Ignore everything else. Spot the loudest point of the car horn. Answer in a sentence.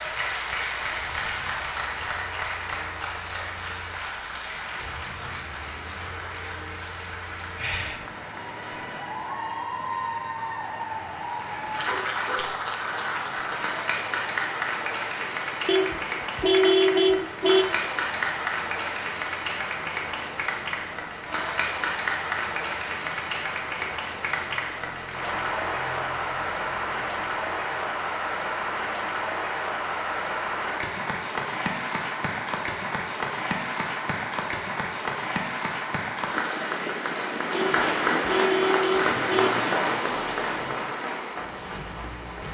The volume of the car horn peaks at 17 seconds.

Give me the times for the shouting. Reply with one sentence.
The shouting can't be heard in this clip.